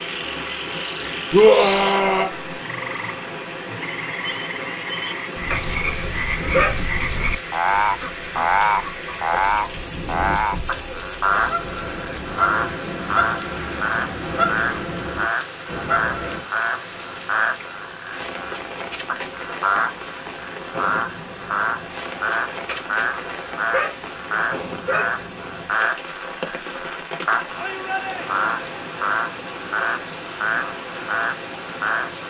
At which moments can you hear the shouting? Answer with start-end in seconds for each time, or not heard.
1.3-2.3, 27.6-28.4.